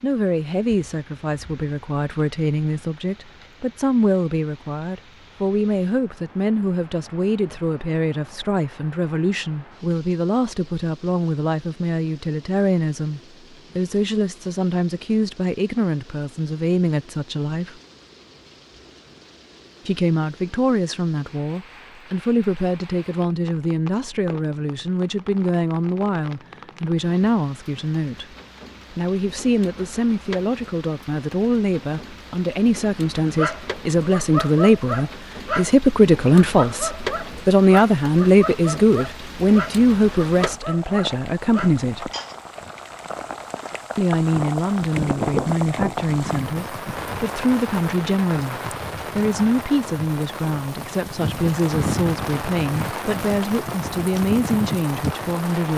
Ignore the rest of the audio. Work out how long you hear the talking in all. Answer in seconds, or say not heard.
51 s.